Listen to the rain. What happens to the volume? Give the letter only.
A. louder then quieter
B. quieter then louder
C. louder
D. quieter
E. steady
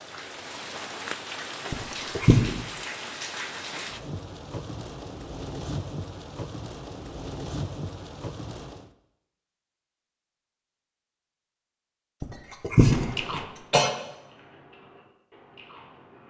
E.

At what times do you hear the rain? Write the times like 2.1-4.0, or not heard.
0.0-8.9.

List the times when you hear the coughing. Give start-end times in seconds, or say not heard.
1.7-2.4, 12.2-13.9.